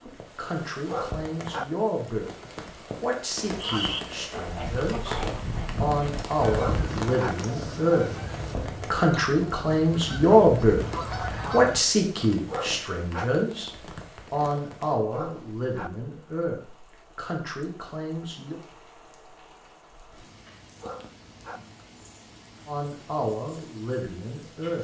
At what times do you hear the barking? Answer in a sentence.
The barking can be heard from 0.8 to 1.6 s, from 6.5 to 7.3 s, from 12.4 to 13.2 s, from 15.1 to 15.9 s and from 20.8 to 21.6 s.